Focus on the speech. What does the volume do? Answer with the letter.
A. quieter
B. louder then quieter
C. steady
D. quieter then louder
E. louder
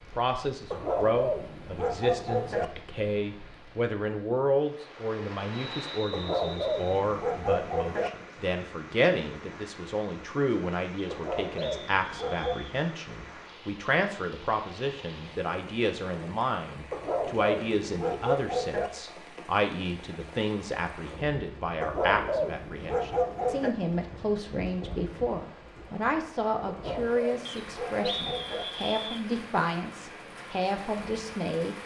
C.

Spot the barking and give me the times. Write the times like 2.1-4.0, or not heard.
0.7-2.6, 6.1-8.1, 11.1-12.7, 16.9-18.9, 21.8-23.8, 26.6-28.6.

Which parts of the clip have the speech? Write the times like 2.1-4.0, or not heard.
0.1-31.8.